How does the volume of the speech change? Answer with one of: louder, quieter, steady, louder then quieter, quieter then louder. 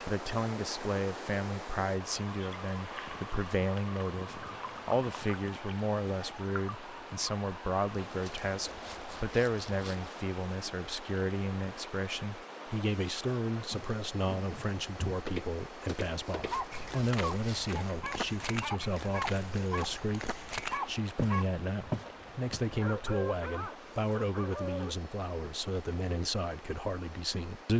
steady.